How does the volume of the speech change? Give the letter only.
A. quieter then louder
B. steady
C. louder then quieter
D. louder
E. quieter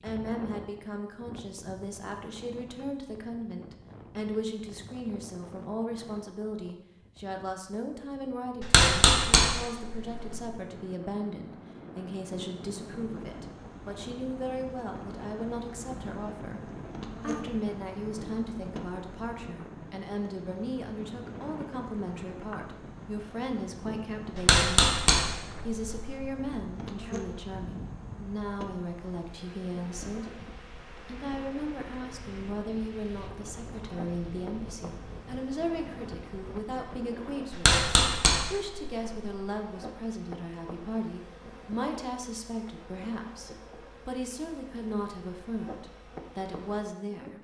B.